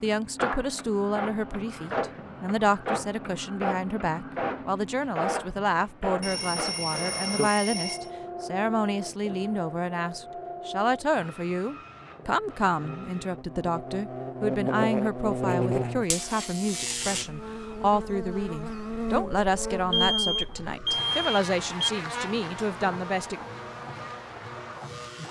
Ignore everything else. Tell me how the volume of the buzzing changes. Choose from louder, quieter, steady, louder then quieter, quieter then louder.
quieter.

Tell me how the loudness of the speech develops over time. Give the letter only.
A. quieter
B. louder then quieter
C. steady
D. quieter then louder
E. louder
C.